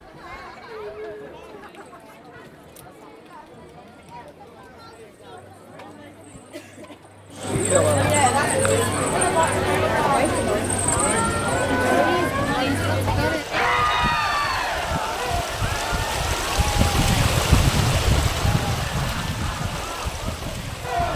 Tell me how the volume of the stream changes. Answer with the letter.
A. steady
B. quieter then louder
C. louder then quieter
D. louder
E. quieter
C.